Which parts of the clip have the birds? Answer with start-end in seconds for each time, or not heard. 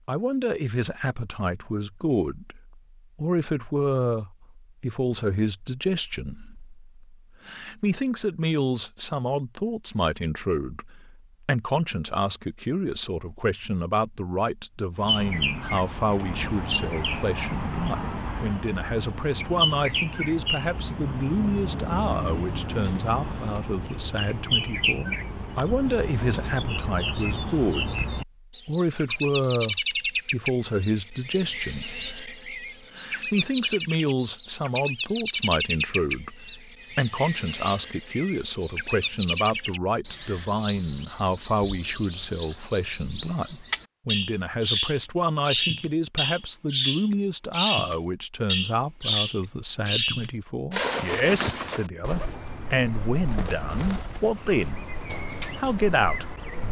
14.9-56.6.